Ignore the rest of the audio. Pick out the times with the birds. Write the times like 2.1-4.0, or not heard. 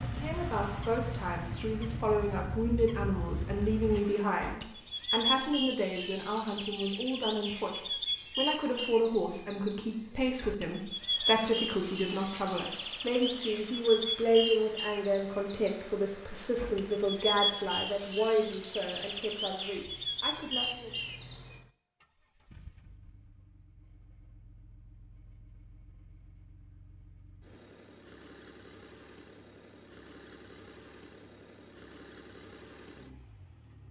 0.0-21.6.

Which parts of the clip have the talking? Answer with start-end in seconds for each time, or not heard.
0.0-20.9.